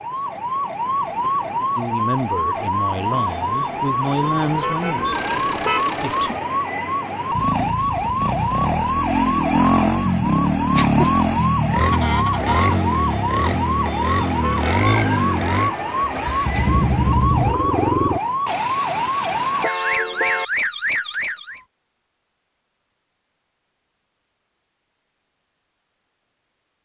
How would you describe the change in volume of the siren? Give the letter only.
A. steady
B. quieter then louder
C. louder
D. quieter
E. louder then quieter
A.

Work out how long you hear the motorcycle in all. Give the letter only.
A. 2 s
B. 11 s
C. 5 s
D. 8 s
B.